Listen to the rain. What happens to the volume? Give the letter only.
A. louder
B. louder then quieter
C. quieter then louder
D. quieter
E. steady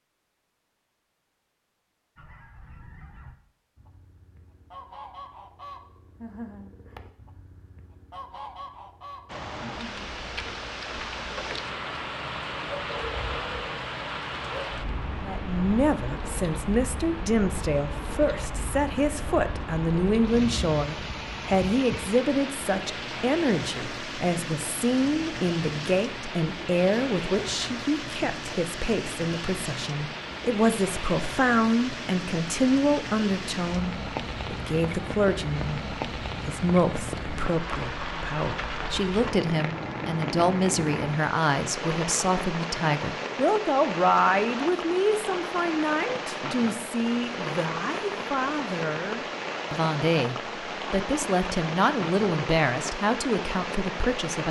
E.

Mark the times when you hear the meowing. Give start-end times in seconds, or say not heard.
not heard.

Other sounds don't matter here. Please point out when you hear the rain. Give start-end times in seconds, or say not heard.
9.2-54.4.